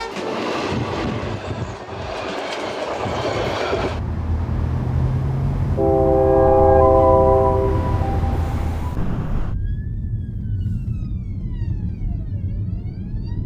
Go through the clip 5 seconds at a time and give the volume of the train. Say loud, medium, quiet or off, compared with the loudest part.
medium, loud, off.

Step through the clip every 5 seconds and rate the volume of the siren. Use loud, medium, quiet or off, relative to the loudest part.
off, loud, loud.